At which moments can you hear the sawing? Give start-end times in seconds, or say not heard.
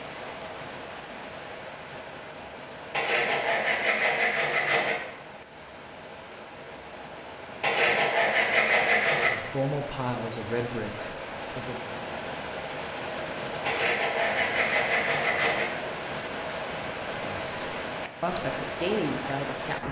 2.9-5.0, 7.6-9.3, 13.7-15.7.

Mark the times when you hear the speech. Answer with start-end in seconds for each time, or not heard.
9.2-11.8, 17.2-19.8.